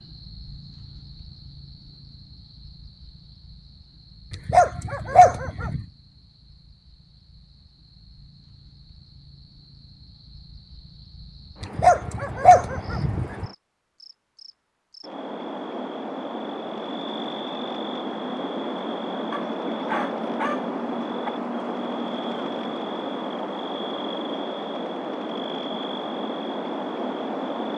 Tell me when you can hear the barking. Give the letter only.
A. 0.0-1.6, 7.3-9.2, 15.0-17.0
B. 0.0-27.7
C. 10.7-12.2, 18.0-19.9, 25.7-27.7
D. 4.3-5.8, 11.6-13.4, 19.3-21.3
D.